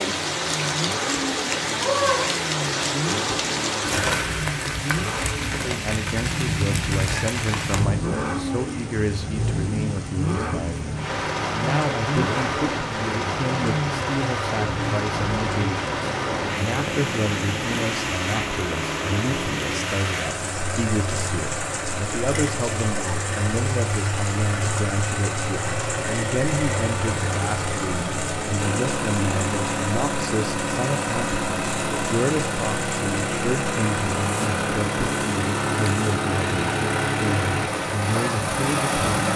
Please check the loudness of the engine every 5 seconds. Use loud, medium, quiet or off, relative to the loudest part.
medium, medium, medium, medium, medium, loud, loud, loud.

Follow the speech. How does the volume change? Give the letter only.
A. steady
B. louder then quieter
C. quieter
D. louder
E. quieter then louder
A.